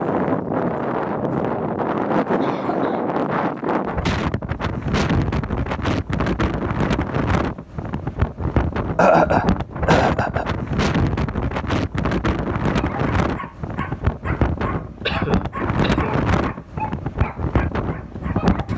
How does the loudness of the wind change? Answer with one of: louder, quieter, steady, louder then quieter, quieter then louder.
steady.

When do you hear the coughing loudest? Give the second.
9 s.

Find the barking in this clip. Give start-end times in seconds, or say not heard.
12.7-18.7.